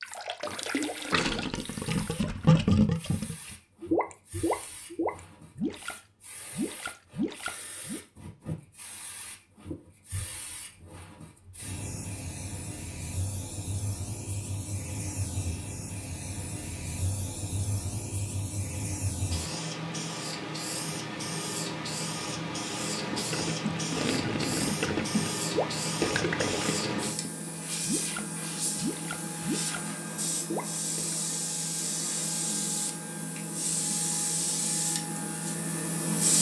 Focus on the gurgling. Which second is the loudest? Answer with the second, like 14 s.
3 s.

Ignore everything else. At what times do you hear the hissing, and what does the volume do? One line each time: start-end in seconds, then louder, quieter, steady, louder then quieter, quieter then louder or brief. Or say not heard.
0.0-36.3 louder.